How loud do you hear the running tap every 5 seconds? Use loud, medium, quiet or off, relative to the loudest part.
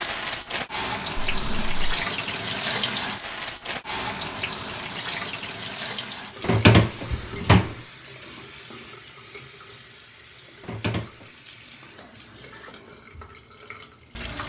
loud, medium, quiet.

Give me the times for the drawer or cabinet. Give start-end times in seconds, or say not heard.
1.2-1.8, 6.5-7.7, 10.7-11.1.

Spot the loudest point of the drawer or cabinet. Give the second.
7 s.